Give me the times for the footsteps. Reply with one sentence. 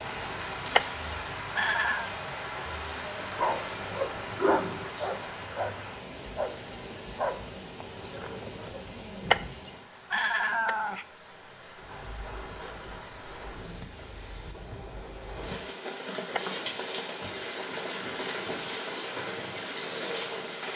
The footsteps can't be heard in this clip.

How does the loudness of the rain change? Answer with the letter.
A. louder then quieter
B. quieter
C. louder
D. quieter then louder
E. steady
D.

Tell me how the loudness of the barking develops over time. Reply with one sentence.
The loudness of the barking goes down.